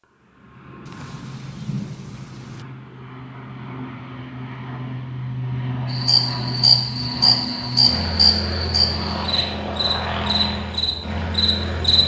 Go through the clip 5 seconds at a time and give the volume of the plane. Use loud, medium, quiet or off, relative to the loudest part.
medium, loud, loud.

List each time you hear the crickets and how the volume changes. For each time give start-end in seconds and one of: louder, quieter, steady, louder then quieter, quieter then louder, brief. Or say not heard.
5.9-12.0 quieter.